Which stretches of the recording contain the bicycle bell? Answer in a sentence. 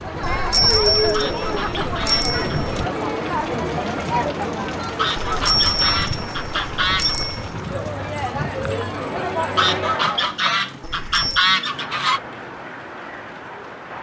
The bicycle bell can be heard from 0.2 to 2.9 s, from 5.2 to 7.5 s and from 10.8 to 11.5 s.